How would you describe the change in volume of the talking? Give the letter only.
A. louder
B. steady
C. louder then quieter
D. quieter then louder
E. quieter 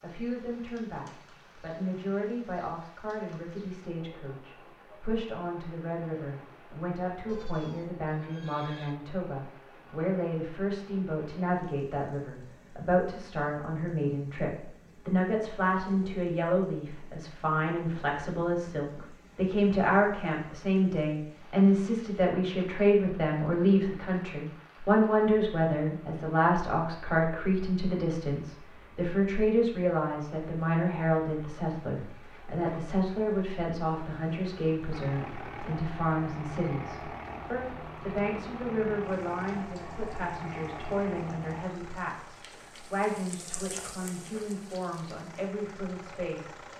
C.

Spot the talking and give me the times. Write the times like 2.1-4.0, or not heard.
0.0-46.6.